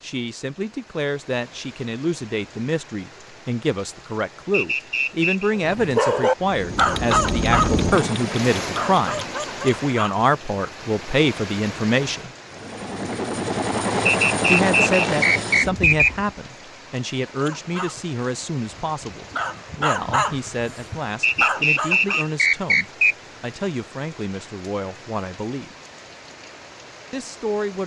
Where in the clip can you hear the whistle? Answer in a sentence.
The whistle can be heard from 4.5 to 5.5 s, from 14.1 to 16.1 s and from 21.2 to 23.1 s.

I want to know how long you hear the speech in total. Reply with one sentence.
The speech can be heard for 24 seconds in total.